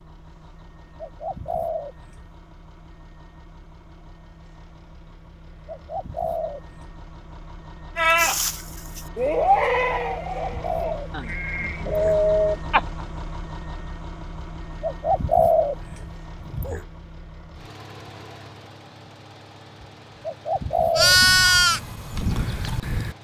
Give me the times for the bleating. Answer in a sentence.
You can hear the bleating from 8.0 to 13.1 s and from 20.9 to 23.1 s.